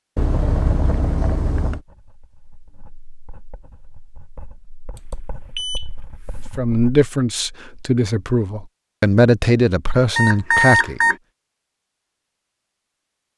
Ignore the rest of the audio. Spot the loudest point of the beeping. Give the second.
11 s.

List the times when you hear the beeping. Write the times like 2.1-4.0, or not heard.
0.1-1.8, 5.0-6.5, 10.2-11.2.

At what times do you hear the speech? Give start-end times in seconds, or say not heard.
6.5-11.0.